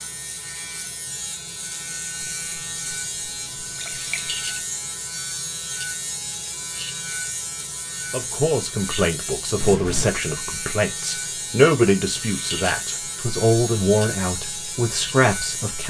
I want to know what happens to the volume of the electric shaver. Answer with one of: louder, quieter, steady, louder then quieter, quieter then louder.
steady.